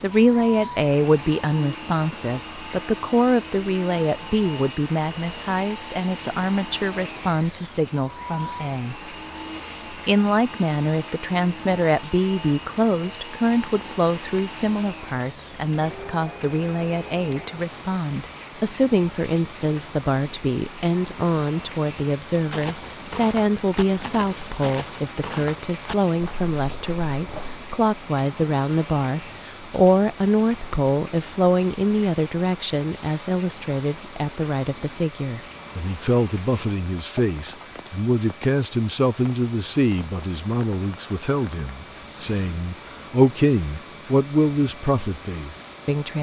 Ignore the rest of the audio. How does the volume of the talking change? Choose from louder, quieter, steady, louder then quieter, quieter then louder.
steady.